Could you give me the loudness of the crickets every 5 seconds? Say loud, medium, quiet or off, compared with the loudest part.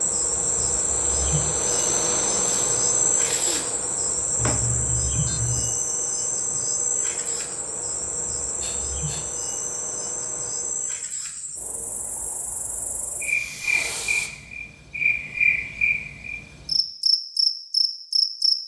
loud, medium, medium, loud.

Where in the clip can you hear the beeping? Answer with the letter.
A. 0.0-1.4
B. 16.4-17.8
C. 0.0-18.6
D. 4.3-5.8
D.